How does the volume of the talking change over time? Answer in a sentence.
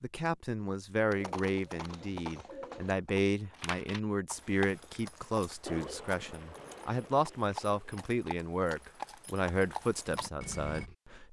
The volume of the talking stays about the same.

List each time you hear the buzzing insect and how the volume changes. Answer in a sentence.
You can't hear the buzzing insect here.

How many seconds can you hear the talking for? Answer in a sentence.
The talking can be heard for 11 seconds in total.